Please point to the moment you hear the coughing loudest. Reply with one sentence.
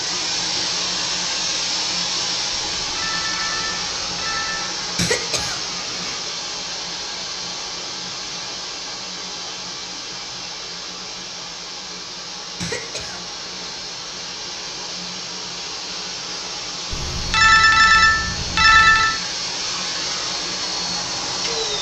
The loudest moment of the coughing is at 5 seconds.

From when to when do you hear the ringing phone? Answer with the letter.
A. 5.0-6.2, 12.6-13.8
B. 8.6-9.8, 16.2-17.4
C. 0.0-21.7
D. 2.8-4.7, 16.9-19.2
D.